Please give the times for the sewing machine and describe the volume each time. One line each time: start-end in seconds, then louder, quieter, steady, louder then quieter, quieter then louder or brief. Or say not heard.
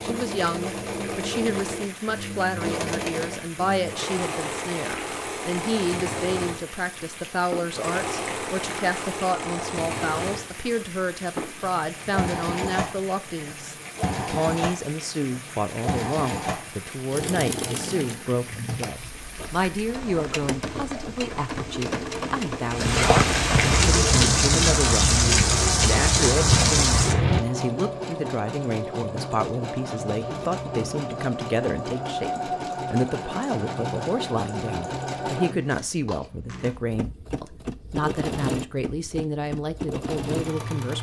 0.0-40.9 steady.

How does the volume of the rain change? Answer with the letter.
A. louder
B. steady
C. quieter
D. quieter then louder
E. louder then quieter
A.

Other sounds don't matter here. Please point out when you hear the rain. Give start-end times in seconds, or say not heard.
0.0-27.4.